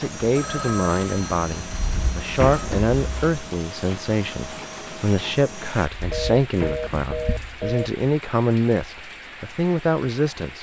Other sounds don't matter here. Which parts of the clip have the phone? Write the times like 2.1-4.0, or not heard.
0.3-2.7, 6.1-7.9.